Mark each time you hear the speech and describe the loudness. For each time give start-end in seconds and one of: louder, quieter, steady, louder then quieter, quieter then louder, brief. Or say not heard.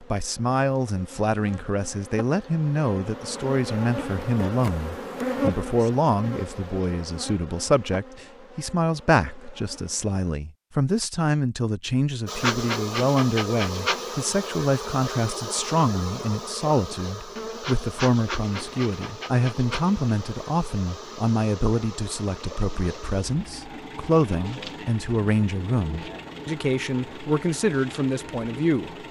0.0-29.0 steady.